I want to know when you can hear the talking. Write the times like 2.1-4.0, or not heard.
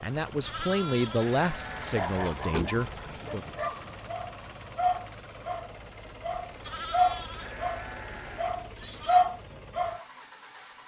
0.0-3.5.